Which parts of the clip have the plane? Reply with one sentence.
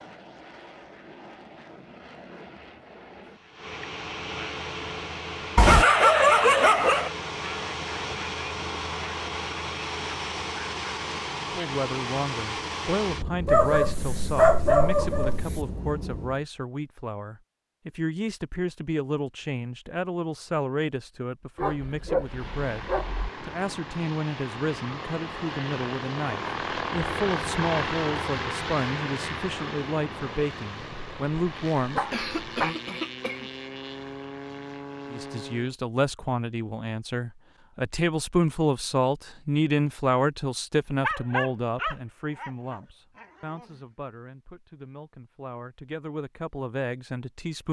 You can hear the plane from 0.0 to 16.4 s and from 22.2 to 35.8 s.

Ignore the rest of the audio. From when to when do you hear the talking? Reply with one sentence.
The talking can be heard from 11.6 to 32.0 s and from 35.1 to 47.6 s.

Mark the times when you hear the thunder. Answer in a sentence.
You can't hear the thunder here.